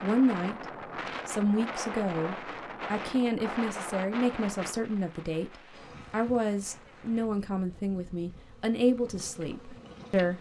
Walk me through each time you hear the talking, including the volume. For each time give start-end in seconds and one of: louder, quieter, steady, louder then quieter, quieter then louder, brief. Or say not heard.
0.0-0.7 brief
1.2-10.3 steady.